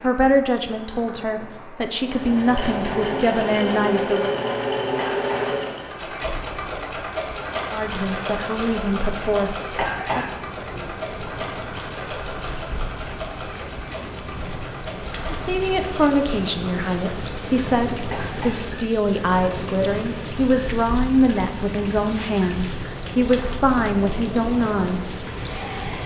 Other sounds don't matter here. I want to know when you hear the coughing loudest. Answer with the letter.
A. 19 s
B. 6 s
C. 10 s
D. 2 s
C.